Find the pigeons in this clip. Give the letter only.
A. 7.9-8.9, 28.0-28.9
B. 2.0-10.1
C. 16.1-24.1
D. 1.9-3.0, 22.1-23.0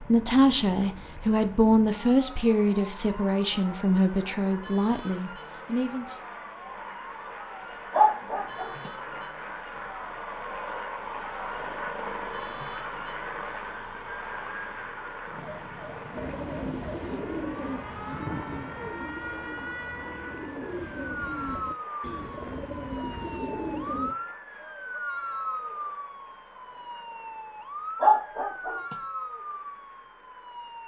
C.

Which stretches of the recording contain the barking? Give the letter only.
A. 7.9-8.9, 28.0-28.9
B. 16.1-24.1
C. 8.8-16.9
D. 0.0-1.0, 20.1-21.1
A.